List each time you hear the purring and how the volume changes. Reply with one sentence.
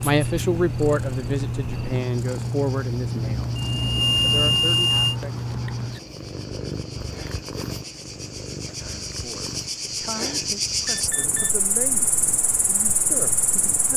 The purring can be heard from 0.0 to 13.9 s, getting quieter.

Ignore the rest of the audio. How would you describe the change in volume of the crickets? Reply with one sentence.
The loudness of the crickets goes up.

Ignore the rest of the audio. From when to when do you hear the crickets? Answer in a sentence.
You can hear the crickets from 0.1 to 13.9 s.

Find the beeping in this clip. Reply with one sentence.
The beeping can be heard from 3.6 to 5.2 s and from 10.8 to 11.5 s.